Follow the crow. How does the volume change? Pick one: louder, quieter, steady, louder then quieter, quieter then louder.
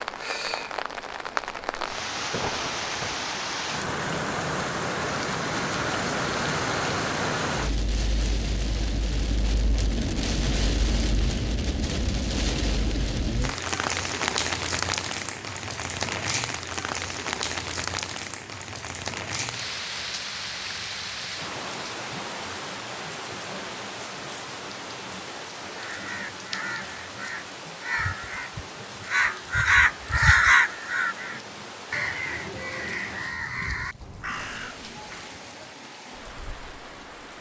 louder then quieter.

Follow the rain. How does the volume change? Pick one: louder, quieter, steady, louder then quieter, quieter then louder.
quieter.